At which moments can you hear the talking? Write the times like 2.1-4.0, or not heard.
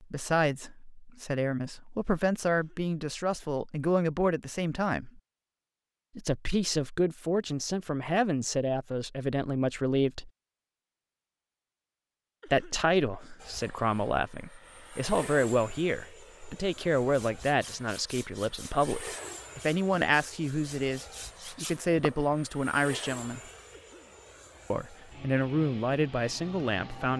0.0-5.2, 6.2-10.3, 12.4-23.4, 24.7-27.1.